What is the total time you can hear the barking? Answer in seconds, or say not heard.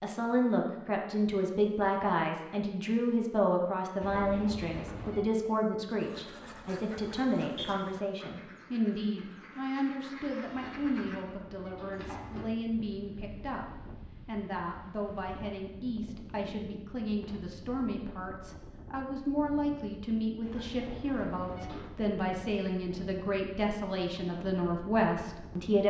not heard.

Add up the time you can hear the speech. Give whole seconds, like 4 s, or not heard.
26 s.